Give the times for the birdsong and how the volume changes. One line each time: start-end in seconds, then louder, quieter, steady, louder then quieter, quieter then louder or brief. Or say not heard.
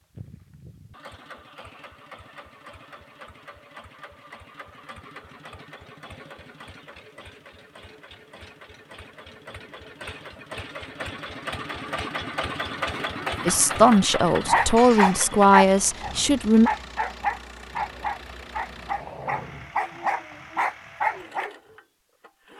not heard.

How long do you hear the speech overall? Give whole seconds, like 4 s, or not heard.
3 s.